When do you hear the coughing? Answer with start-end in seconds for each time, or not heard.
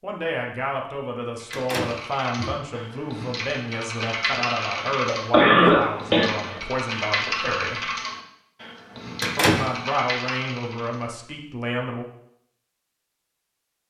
4.6-6.6.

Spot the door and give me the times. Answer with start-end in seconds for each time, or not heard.
1.5-2.5, 9.2-9.7.